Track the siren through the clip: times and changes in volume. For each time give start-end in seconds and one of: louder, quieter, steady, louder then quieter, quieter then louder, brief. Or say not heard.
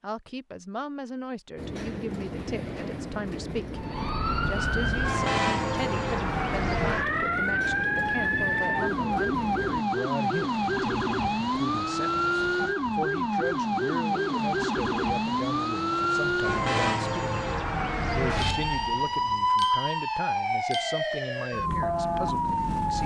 3.8-23.0 steady.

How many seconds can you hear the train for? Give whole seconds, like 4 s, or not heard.
8 s.